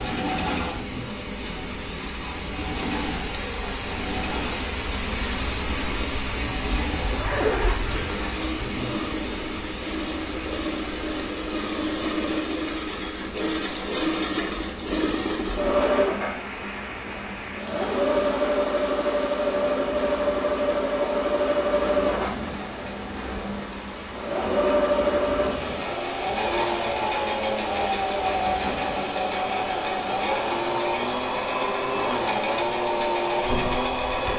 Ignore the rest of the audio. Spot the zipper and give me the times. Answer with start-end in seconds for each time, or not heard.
7.0-8.3.